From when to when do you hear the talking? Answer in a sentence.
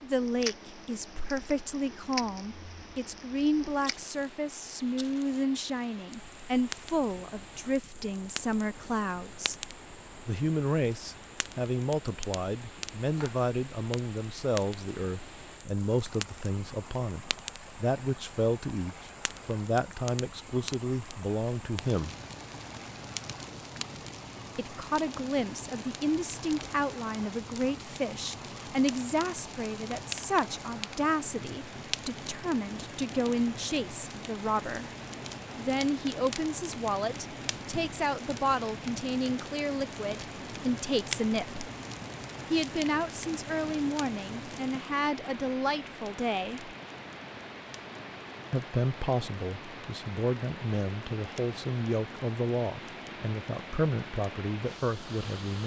You can hear the talking from 0.0 to 9.6 s, from 10.2 to 22.1 s, from 24.6 to 34.9 s, from 35.5 to 41.6 s, from 42.5 to 46.8 s and from 48.5 to 55.6 s.